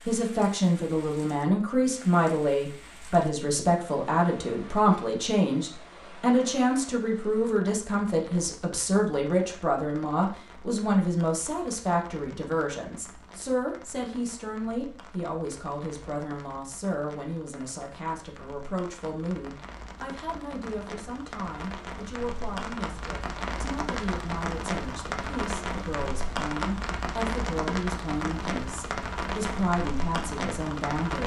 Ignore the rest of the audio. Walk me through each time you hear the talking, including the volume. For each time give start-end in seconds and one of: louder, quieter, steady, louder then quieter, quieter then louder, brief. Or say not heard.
0.1-31.2 quieter.